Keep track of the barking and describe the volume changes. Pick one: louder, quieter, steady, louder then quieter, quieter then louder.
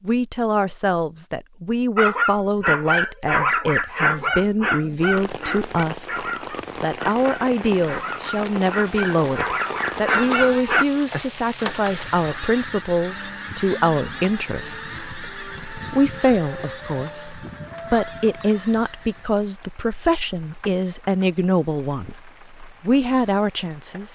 quieter then louder.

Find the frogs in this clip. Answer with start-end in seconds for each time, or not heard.
not heard.